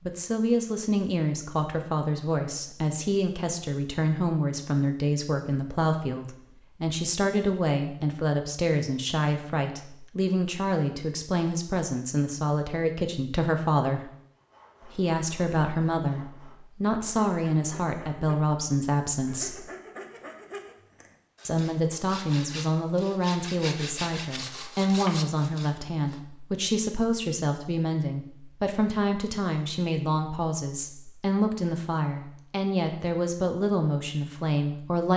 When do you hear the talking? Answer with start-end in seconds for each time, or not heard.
0.1-14.1, 14.8-19.6, 21.4-35.1.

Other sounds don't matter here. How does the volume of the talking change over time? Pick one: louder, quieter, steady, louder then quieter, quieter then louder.
steady.